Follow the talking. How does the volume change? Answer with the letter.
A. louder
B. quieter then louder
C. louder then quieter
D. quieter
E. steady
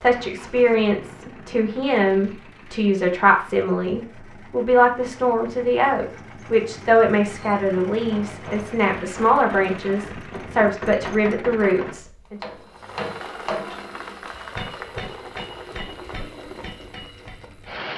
E.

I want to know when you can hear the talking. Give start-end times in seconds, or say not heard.
0.0-12.4.